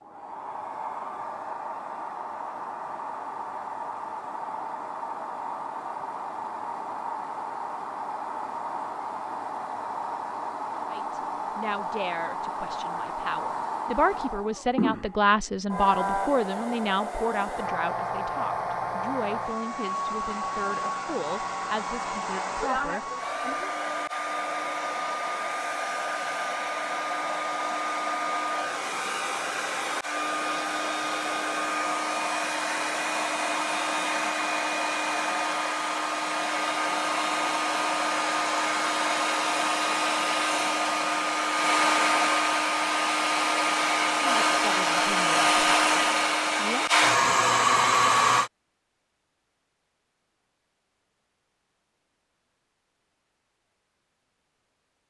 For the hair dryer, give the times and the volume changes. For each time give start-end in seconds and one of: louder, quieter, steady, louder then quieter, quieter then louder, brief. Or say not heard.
0.0-48.5 louder.